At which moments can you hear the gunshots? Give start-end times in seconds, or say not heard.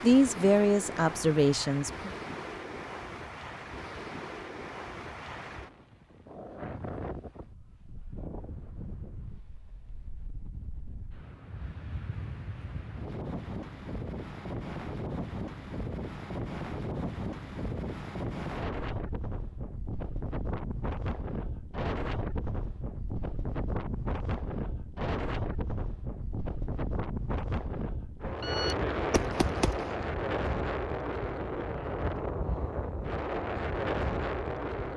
28.4-30.1.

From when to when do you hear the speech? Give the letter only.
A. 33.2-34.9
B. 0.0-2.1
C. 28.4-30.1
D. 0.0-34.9
B.